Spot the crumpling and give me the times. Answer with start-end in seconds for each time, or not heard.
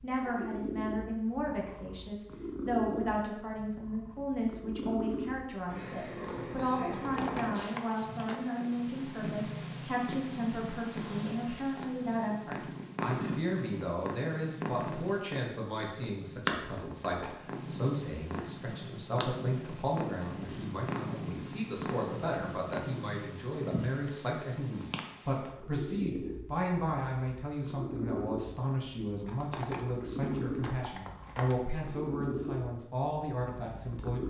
7.0-8.4, 16.8-17.6, 29.2-31.6.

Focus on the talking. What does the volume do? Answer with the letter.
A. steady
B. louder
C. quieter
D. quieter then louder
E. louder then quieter
A.